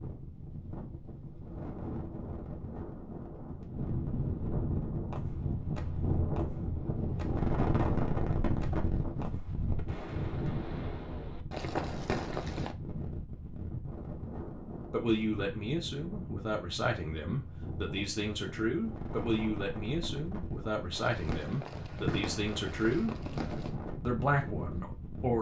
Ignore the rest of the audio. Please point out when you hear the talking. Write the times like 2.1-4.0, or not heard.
14.9-23.1, 24.1-25.3.